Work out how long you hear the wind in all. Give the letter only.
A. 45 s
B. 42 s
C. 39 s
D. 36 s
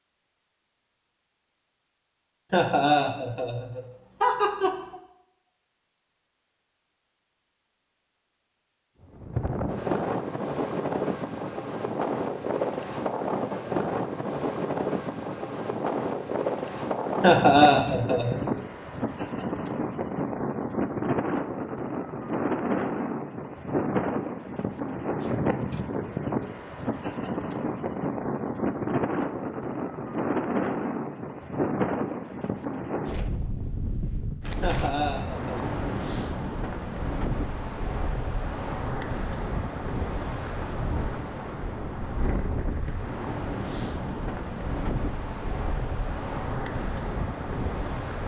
C.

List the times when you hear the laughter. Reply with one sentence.
The laughter can be heard from 2.5 to 5.0 s, from 17.2 to 18.6 s and from 34.6 to 35.5 s.